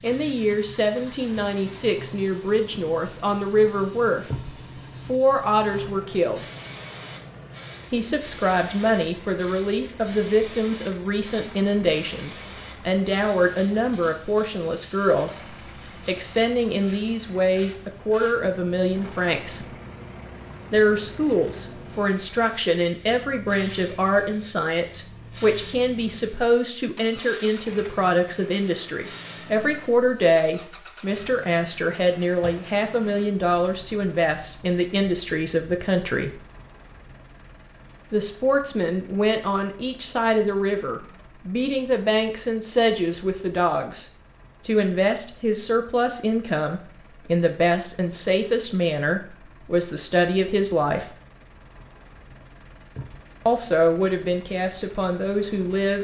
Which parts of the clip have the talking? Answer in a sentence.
You can hear the talking from 0.0 to 6.4 s, from 7.9 to 15.4 s, from 16.1 to 19.6 s, from 20.7 to 36.4 s, from 38.1 to 51.1 s and from 53.5 to 55.9 s.